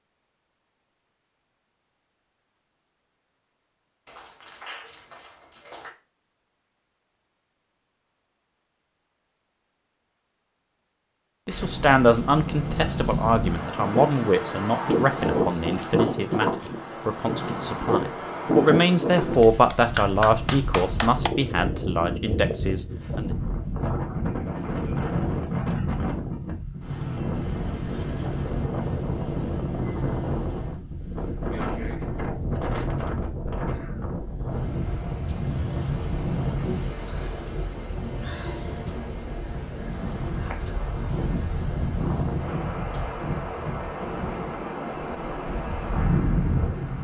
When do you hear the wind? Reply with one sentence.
You can hear the wind from 11.5 to 47.0 s.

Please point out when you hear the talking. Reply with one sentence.
The talking can be heard from 11.4 to 23.3 s.